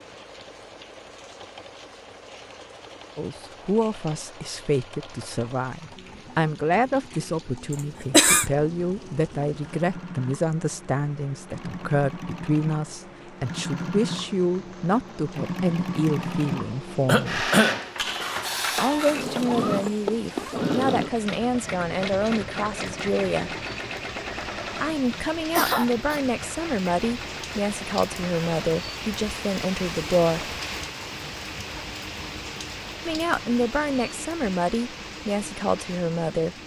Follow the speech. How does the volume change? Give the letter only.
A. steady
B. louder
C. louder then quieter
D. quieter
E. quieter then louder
A.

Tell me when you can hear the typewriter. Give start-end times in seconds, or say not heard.
not heard.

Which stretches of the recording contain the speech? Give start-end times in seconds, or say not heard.
3.1-17.5, 18.8-23.6, 24.8-30.6, 33.0-36.5.